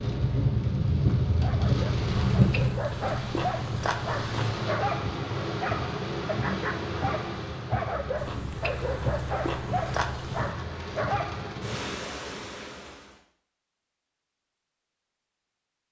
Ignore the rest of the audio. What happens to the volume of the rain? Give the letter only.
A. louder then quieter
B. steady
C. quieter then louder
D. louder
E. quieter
E.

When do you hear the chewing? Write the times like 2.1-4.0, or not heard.
2.0-4.7, 8.2-10.6.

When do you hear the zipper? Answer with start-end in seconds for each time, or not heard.
not heard.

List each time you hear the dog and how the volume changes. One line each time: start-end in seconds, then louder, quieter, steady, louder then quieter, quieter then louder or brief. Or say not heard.
1.3-11.6 steady.